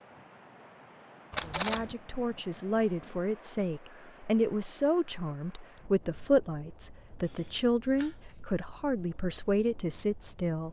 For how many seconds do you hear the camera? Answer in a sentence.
You can hear the camera for 2 seconds altogether.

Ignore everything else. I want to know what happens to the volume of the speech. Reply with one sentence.
The loudness of the speech stays about the same.